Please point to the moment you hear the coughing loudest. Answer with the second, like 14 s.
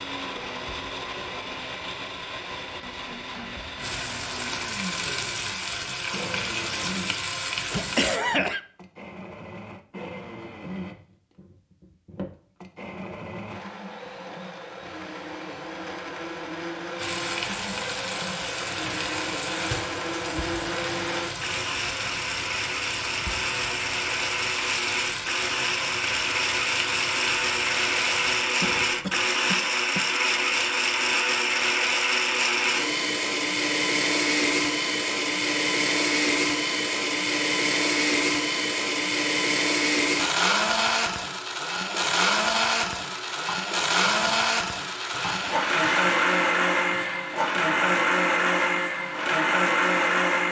8 s.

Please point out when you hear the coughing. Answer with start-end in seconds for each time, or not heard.
7.7-8.6, 28.6-30.1.